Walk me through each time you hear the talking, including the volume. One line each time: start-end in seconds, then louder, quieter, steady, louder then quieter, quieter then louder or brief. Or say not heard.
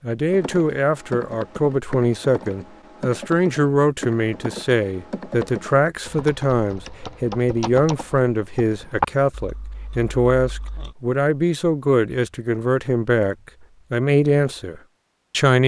0.0-15.6 steady.